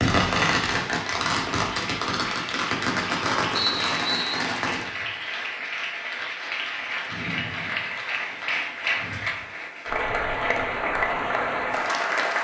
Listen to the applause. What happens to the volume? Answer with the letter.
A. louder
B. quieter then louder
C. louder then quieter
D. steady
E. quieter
A.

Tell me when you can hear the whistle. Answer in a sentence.
The whistle can be heard from 3.5 to 4.4 s.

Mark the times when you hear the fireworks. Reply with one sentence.
The fireworks can be heard from 0.0 to 4.8 s.